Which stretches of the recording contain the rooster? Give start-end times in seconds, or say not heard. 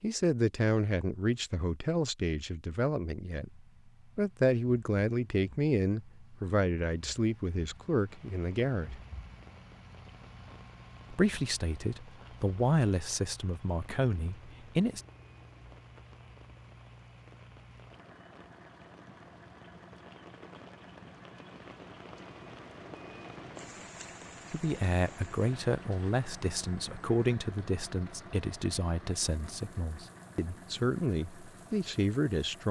not heard.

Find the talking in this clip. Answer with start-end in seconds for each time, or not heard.
0.0-9.0, 11.1-15.0, 24.5-32.6.